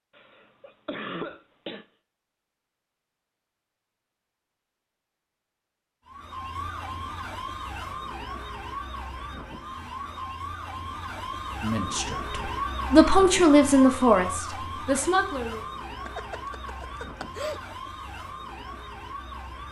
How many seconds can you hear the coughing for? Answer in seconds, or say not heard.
3 s.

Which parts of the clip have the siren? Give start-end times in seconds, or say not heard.
6.0-19.6.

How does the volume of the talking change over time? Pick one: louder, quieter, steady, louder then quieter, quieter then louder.
louder then quieter.